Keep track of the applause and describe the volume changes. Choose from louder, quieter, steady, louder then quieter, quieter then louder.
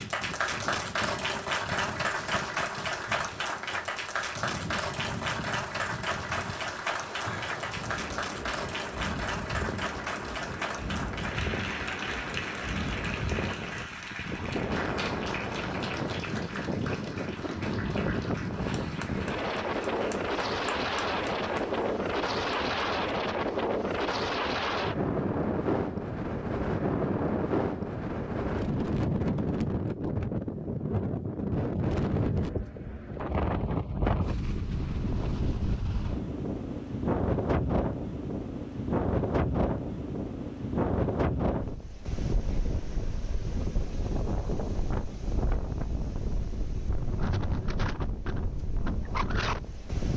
quieter.